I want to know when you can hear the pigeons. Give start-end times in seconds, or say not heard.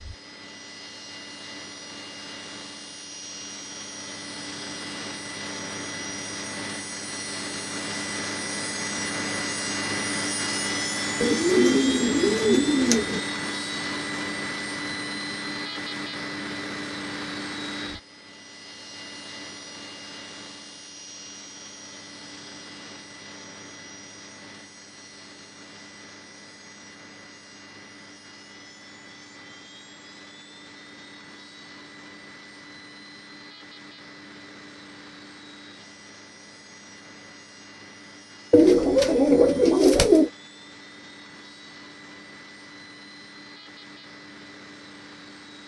11.2-13.2, 38.5-40.3.